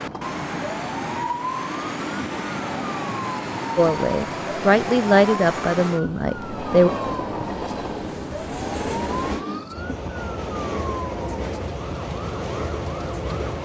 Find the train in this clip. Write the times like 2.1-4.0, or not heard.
0.0-13.6.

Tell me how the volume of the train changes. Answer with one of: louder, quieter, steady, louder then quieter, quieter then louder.
steady.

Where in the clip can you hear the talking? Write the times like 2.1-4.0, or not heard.
3.8-6.9.